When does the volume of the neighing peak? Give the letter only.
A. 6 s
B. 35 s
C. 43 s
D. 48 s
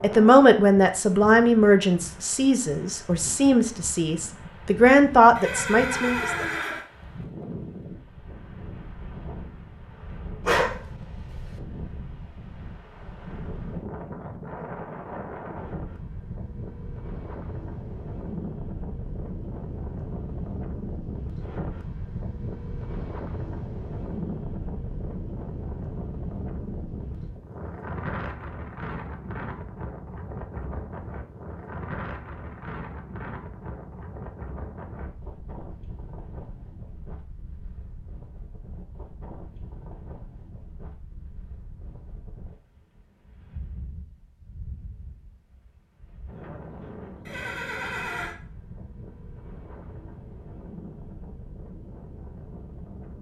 A.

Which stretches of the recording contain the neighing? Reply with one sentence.
You can hear the neighing from 5.3 to 6.8 s and from 47.2 to 48.4 s.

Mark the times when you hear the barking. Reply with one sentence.
You can hear the barking from 10.4 to 11.5 s.